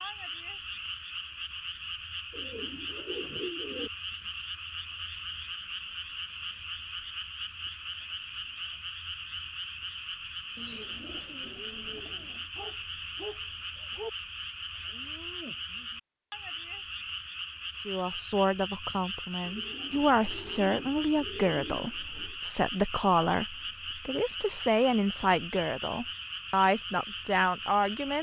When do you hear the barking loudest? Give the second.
14 s.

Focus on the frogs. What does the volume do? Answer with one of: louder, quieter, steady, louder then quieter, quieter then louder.
steady.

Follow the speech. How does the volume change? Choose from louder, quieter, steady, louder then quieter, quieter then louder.
steady.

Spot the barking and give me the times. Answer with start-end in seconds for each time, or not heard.
12.6-14.1.